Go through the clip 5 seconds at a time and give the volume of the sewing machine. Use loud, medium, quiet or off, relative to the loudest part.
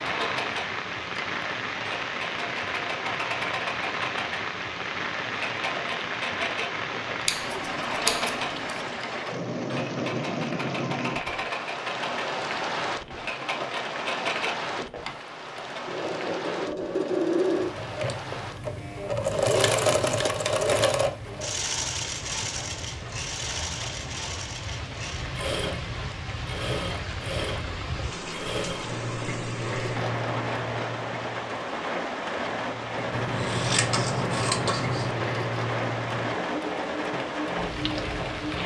medium, medium, medium, loud, loud, medium, medium, medium.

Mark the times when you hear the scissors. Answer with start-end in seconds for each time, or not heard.
7.2-8.8, 33.1-35.1.